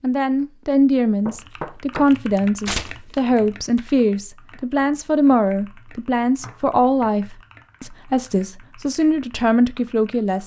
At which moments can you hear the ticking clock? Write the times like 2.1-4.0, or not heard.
not heard.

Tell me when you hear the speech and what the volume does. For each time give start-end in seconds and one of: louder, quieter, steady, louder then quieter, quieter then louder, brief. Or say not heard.
0.0-10.4 steady.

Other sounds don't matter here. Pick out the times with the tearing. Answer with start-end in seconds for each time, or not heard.
2.6-3.1.